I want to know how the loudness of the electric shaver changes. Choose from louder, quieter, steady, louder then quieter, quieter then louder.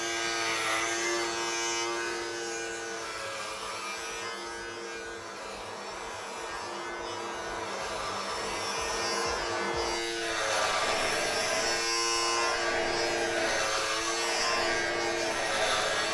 quieter then louder.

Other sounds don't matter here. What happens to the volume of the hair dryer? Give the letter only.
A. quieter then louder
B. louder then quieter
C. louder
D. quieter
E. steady
C.